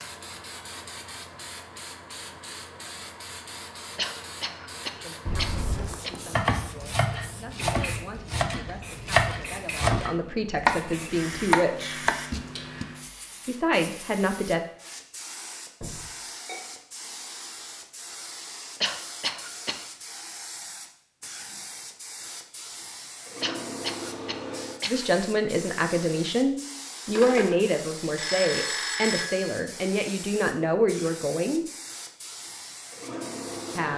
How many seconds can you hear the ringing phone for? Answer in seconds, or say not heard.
4 s.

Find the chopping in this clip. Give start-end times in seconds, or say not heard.
6.3-12.8.